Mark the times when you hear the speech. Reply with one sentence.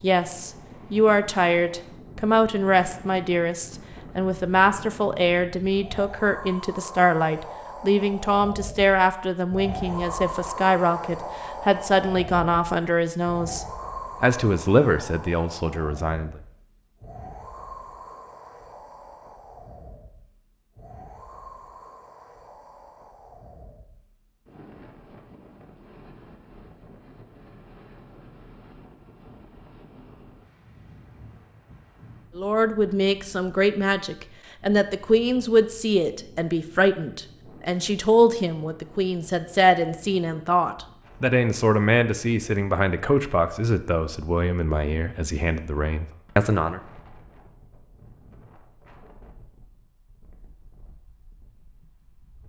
You can hear the speech from 0.0 to 16.4 s and from 32.4 to 46.8 s.